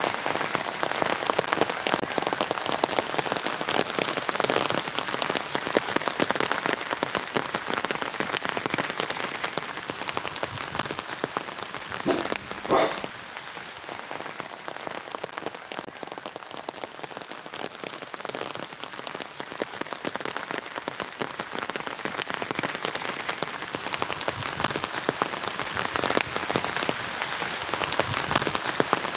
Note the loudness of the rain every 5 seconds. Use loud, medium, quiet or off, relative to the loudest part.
loud, loud, medium, medium, medium, loud.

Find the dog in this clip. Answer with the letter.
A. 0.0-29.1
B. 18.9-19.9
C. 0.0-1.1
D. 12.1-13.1
D.